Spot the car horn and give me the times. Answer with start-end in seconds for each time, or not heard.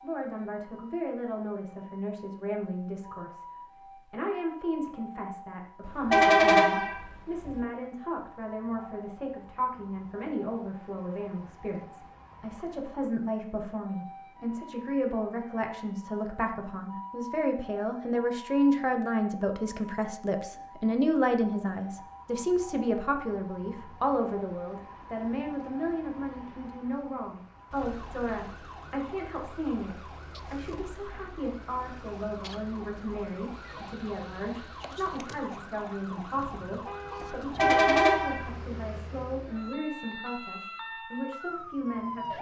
5.8-7.5, 37.5-38.5.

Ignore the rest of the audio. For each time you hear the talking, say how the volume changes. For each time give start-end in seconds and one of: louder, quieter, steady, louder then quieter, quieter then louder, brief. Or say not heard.
0.0-42.3 louder then quieter.